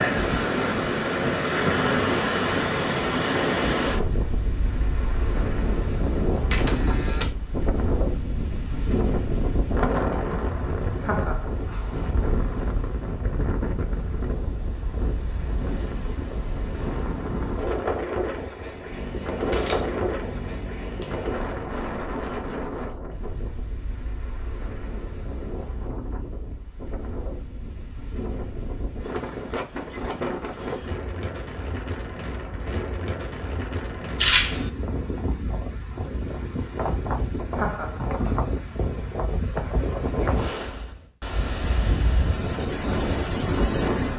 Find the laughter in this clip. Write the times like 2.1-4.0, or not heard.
11.0-11.9, 37.5-38.5.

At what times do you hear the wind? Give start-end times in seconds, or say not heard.
0.0-44.1.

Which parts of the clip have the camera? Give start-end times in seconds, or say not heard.
6.5-7.3, 18.9-21.4, 34.1-34.7.